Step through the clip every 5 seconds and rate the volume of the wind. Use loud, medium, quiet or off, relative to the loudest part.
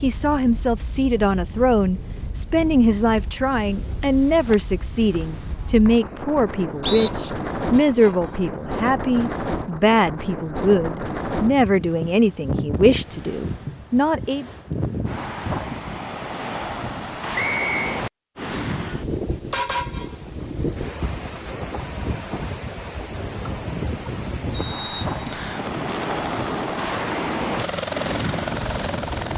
medium, loud, loud, loud, loud, loud.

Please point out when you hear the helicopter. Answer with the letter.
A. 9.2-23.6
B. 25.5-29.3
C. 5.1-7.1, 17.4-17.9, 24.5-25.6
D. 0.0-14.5
B.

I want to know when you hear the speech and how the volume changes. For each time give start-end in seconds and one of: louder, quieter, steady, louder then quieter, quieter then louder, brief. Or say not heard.
0.0-14.5 steady.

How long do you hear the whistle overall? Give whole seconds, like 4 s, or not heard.
4 s.